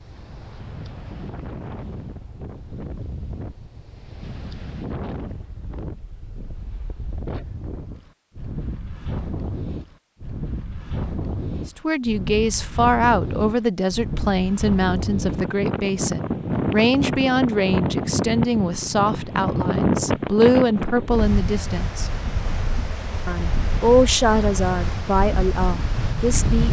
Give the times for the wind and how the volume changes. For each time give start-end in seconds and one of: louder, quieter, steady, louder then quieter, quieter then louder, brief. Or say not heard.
0.0-26.6 louder then quieter.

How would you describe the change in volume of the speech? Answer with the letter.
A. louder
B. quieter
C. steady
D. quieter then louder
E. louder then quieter
C.